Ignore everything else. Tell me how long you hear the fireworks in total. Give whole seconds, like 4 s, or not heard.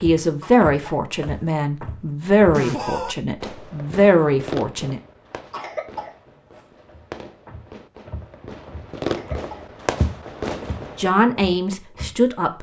9 s.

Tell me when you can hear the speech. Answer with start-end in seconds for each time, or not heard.
0.0-5.0, 10.9-12.5.